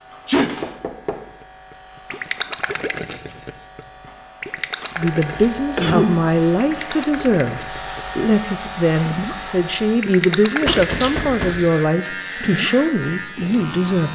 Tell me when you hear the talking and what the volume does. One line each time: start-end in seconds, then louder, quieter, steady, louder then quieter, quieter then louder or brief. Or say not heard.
5.0-14.0 steady.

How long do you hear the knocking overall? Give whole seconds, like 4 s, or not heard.
2 s.